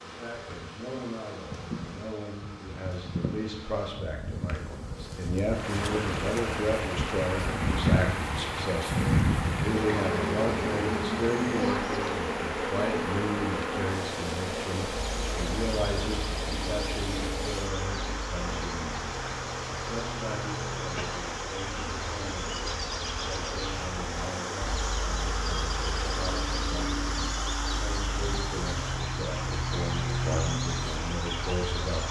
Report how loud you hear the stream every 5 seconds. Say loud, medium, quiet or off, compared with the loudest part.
off, loud, loud, loud, loud, loud, loud.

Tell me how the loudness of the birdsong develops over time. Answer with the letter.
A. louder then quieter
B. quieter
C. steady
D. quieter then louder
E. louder
E.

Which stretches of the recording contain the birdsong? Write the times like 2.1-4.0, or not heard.
15.0-32.0.